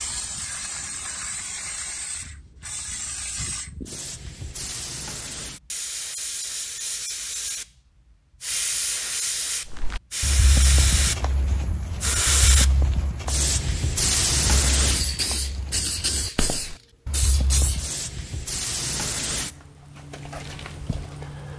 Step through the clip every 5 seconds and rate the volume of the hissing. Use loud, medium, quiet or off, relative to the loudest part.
medium, medium, loud, medium, quiet.